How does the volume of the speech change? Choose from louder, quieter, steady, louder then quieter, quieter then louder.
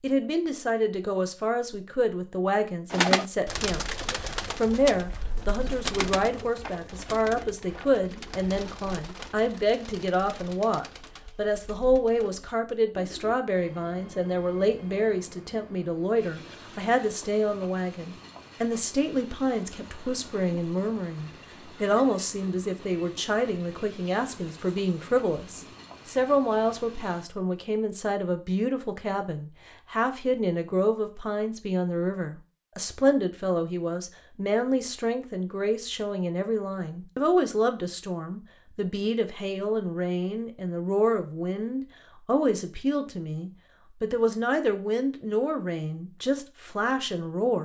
steady.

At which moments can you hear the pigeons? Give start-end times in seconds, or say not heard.
2.9-13.3.